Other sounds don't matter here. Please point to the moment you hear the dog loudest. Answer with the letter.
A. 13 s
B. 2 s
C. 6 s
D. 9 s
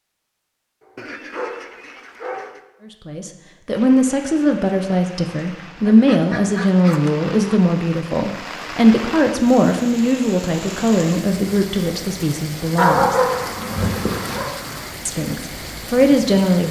A.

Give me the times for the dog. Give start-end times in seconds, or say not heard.
0.8-2.5, 12.8-14.5.